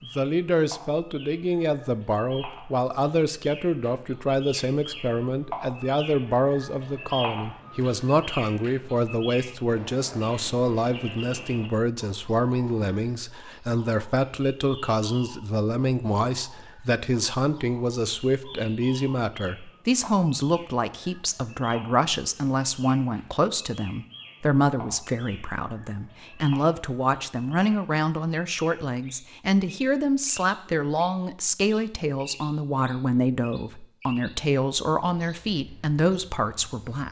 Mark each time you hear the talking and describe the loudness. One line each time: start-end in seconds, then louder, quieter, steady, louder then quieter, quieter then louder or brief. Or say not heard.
0.0-37.0 steady.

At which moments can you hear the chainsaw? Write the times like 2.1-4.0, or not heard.
not heard.